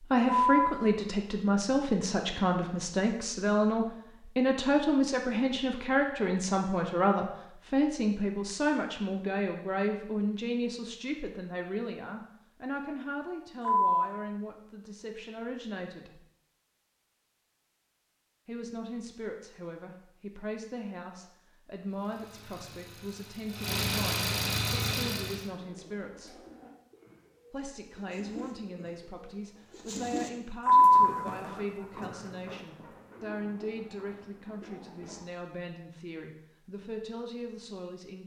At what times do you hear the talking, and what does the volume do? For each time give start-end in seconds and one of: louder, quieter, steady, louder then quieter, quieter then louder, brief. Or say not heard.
0.0-16.2 quieter
18.4-26.4 steady
27.5-38.2 steady.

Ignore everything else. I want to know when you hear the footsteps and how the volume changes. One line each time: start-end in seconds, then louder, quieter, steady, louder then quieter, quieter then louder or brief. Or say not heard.
not heard.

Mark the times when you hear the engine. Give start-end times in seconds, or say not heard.
21.9-25.5.